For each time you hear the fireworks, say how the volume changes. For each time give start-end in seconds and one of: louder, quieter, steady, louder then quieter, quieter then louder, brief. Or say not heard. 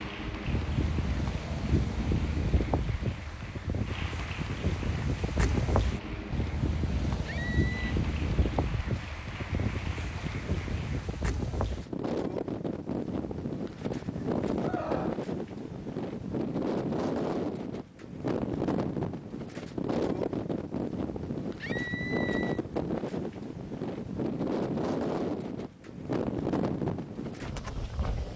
not heard.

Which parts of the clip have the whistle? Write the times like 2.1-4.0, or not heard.
not heard.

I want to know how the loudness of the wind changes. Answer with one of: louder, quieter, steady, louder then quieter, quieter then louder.
steady.